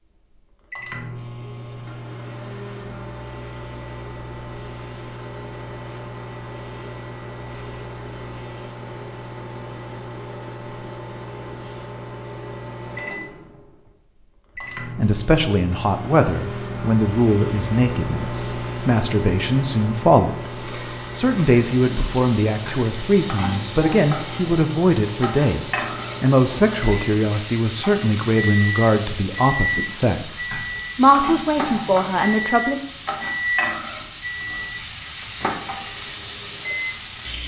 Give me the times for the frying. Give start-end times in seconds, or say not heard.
20.4-37.4.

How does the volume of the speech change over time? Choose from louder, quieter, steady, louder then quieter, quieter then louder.
steady.